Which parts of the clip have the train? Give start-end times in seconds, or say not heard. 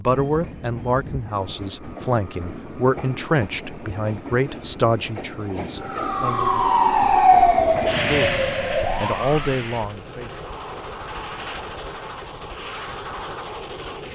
0.0-14.1.